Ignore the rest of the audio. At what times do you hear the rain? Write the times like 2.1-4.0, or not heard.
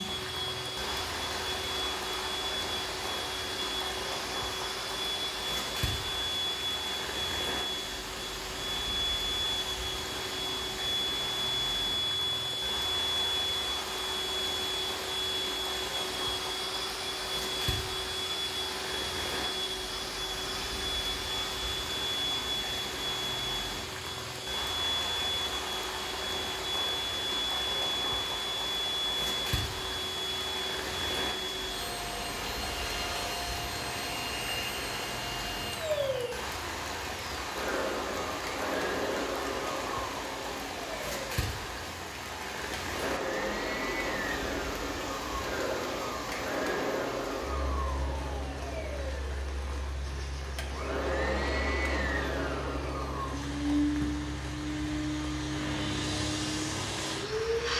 0.0-57.7.